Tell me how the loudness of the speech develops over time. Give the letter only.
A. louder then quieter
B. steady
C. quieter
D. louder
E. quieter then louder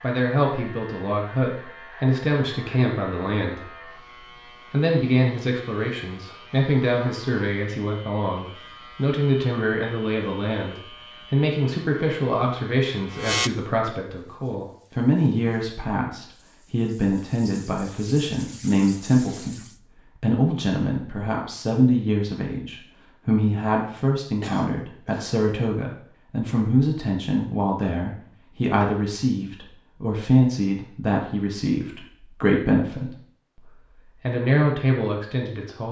B.